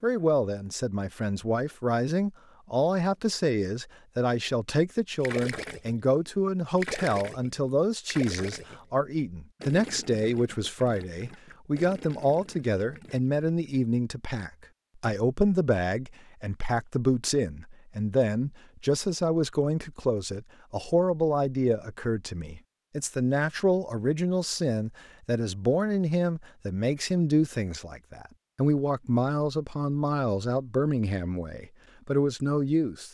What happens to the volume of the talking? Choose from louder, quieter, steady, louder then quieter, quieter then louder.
steady.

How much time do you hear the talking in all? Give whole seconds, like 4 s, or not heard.
33 s.